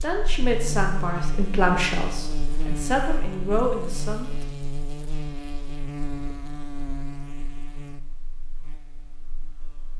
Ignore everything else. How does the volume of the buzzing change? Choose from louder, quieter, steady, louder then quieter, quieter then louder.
quieter.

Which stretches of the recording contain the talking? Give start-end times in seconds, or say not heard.
0.0-4.5.